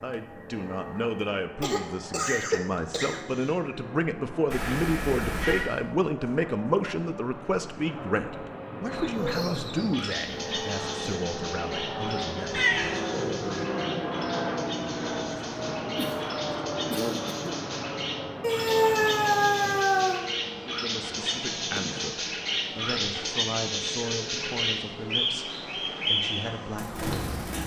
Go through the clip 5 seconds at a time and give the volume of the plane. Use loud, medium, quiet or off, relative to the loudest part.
medium, medium, loud, loud, medium, medium.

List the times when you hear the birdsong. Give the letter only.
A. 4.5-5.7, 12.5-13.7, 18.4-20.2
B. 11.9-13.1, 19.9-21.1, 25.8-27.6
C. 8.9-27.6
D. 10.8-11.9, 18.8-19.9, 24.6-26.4
C.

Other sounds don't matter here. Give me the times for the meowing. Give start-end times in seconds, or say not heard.
4.5-5.7, 12.5-13.7, 18.4-20.2.